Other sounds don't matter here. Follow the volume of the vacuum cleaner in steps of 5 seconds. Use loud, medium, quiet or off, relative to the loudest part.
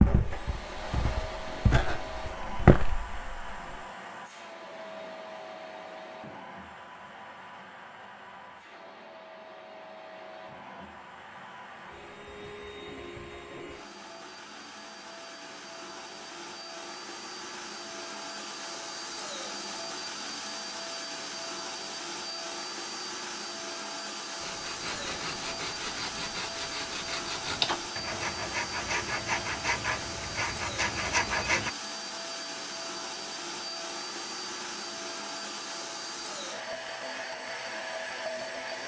loud, medium, medium, loud, loud, loud, loud, loud.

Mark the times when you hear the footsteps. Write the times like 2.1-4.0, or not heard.
0.0-3.8.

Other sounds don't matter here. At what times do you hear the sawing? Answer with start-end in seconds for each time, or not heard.
24.4-31.7.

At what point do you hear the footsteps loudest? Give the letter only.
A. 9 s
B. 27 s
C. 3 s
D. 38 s
C.